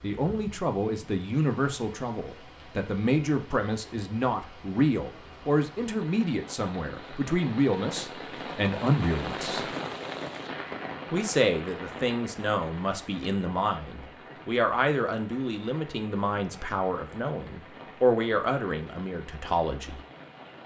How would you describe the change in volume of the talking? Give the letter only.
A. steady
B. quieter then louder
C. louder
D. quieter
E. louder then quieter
A.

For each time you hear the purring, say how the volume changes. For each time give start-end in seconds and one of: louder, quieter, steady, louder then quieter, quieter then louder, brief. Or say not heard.
not heard.